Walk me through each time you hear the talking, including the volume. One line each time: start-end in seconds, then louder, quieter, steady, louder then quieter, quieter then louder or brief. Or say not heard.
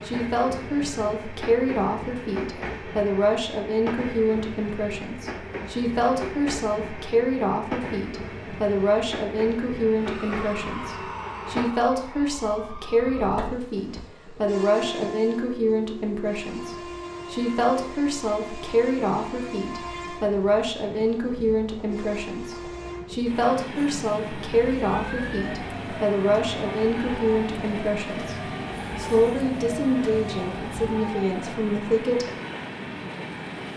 0.0-32.3 steady.